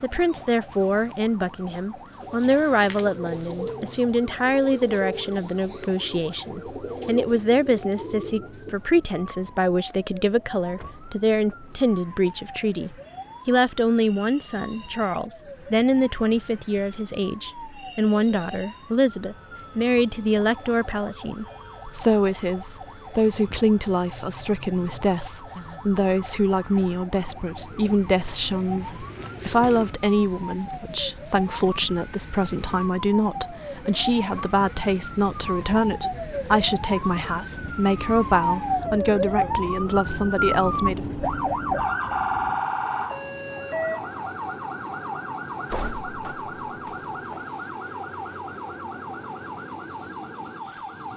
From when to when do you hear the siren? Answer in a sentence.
The siren can be heard from 0.0 to 51.1 s.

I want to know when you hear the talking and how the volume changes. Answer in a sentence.
You can hear the talking from 0.0 to 41.0 s, at a steady volume.